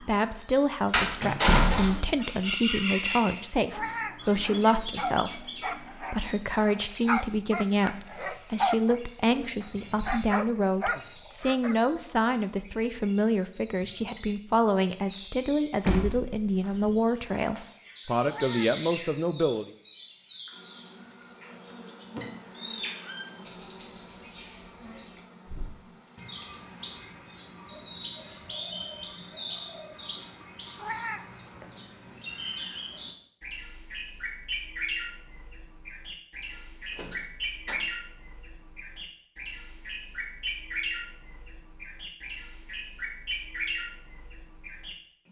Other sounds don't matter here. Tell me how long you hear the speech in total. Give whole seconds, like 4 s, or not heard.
20 s.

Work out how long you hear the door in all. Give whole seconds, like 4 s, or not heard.
3 s.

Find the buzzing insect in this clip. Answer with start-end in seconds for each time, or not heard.
20.5-27.0.